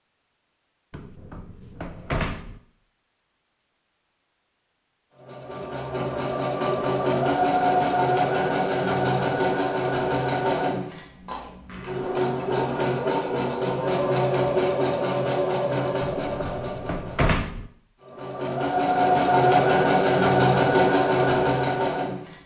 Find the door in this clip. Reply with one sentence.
You can hear the door from 0.9 to 2.6 s and from 16.2 to 17.7 s.